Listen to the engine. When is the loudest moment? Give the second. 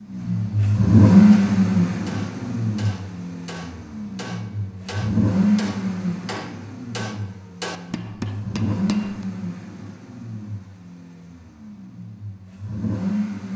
1 s.